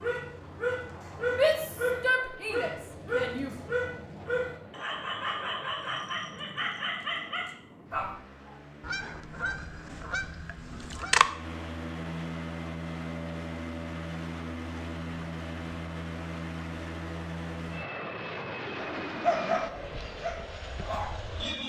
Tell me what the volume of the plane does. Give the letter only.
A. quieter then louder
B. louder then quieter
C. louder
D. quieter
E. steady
C.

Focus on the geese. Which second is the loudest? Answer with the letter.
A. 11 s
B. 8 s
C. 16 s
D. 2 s
A.